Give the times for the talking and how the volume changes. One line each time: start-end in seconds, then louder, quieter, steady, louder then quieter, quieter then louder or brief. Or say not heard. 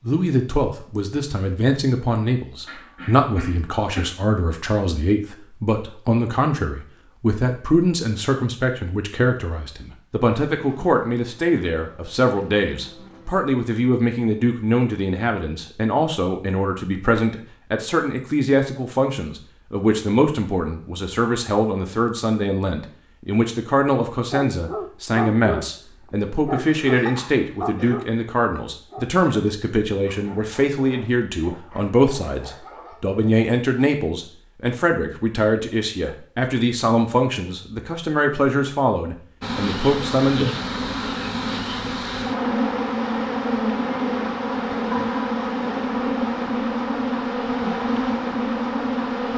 0.0-40.5 steady.